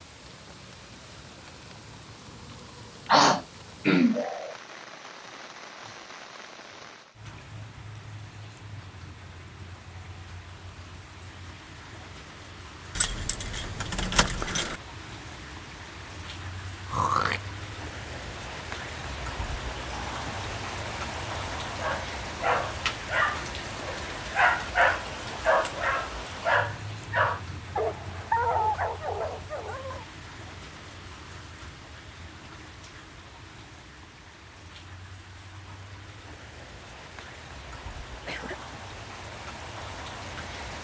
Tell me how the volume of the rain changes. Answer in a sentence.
The loudness of the rain goes up, then down.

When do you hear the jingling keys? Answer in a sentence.
The jingling keys can be heard from 12.9 to 14.8 s.